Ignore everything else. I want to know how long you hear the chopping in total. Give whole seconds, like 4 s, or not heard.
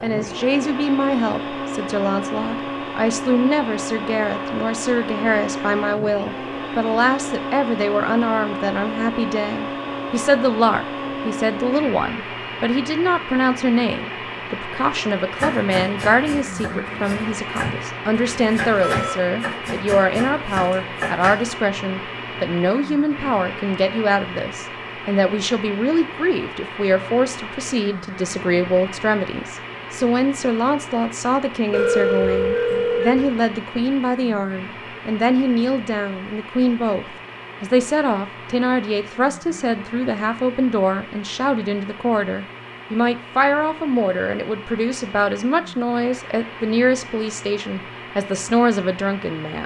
6 s.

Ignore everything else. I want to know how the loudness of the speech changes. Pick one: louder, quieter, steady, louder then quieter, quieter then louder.
steady.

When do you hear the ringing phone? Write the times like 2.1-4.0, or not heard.
18.2-19.1, 31.7-33.3.